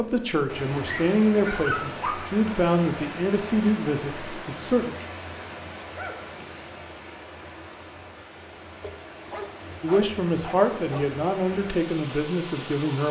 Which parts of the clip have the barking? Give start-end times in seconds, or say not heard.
0.8-2.5, 5.8-6.7, 8.8-11.1.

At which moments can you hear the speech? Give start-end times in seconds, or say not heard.
0.0-4.9, 9.8-13.0.